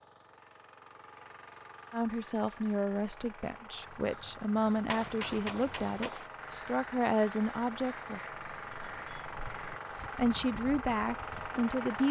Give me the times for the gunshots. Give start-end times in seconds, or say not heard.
4.8-6.3.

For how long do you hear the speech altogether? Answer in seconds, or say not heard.
8 s.